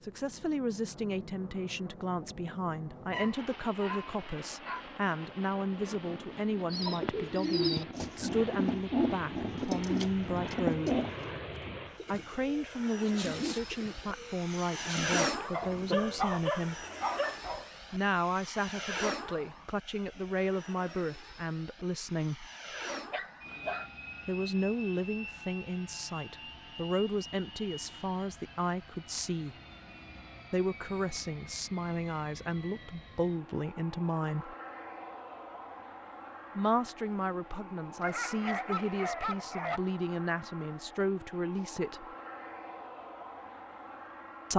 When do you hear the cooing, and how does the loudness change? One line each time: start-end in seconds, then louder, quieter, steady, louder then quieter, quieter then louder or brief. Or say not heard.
6.7-16.1 quieter.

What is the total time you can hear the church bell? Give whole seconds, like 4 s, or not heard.
not heard.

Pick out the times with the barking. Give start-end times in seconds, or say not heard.
3.1-4.8, 15.5-17.6, 23.1-23.9, 38.0-39.8.